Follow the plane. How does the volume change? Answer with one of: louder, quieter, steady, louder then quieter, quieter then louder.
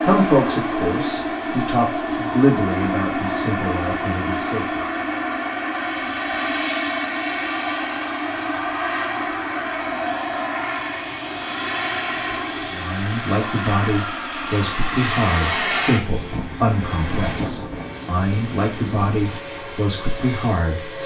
quieter.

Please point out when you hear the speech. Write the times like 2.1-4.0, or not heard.
0.0-4.8, 12.7-21.0.